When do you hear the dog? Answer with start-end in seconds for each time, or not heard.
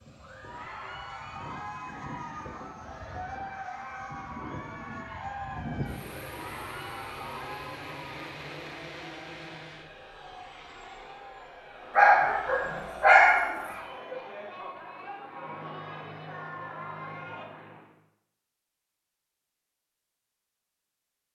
11.9-13.6.